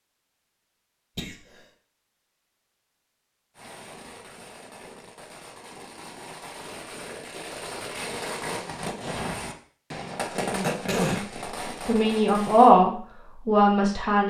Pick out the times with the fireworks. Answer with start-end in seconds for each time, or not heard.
3.5-12.8.